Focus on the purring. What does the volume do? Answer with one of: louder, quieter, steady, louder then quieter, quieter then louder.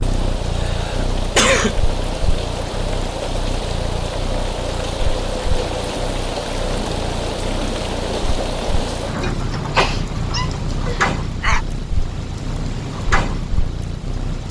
steady.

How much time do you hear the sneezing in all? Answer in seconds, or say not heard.
3 s.